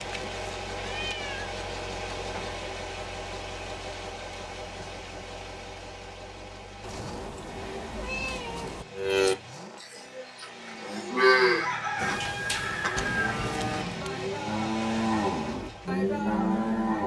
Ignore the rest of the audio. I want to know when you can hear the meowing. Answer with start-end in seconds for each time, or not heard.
0.8-1.6, 6.8-8.8, 12.9-14.1.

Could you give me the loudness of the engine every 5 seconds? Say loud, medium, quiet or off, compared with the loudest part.
loud, medium, medium, loud.